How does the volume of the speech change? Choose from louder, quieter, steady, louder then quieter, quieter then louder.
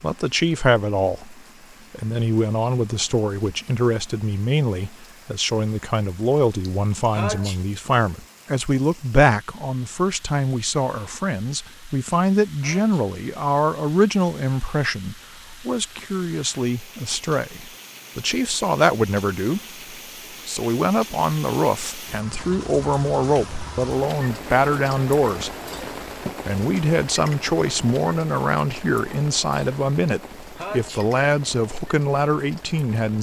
steady.